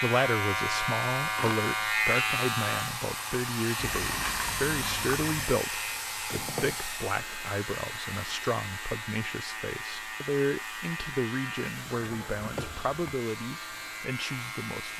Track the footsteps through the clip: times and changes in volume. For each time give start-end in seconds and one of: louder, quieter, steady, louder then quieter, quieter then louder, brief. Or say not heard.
not heard.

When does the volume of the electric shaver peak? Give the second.
2 s.